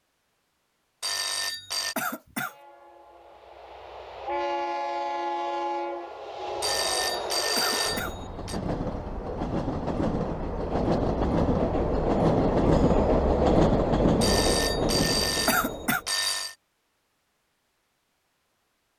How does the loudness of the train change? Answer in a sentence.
The loudness of the train goes up.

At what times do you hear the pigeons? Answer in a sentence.
You can't hear the pigeons here.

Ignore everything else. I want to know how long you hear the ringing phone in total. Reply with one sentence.
The ringing phone can be heard for 5 seconds in total.